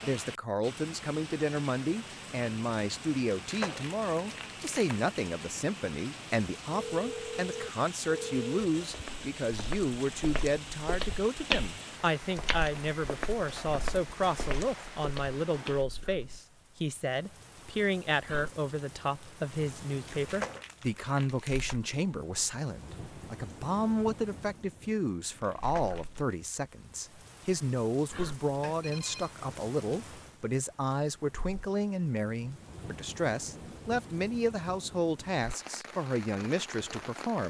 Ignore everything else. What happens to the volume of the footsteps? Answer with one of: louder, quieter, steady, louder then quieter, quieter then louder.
louder then quieter.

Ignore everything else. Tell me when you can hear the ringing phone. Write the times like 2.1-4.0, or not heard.
6.7-8.6, 28.6-29.3.